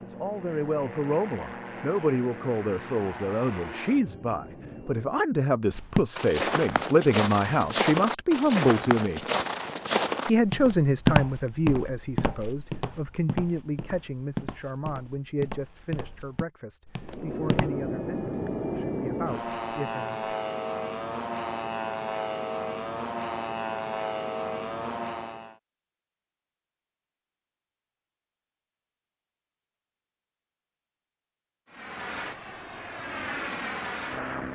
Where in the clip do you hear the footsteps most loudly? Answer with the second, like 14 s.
11 s.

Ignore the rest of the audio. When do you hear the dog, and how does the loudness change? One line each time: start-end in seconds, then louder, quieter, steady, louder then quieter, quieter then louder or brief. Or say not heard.
not heard.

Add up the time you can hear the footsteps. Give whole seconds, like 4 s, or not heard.
12 s.